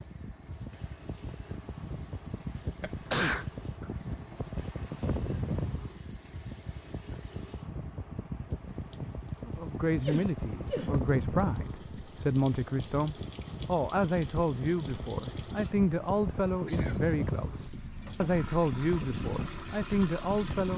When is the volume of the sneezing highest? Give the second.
3 s.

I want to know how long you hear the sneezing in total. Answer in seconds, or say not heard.
3 s.